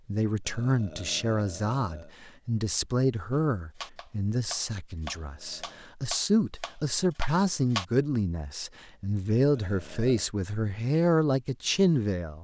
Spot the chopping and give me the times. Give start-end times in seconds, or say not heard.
3.3-7.8.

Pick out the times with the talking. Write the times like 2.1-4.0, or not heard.
0.1-12.3.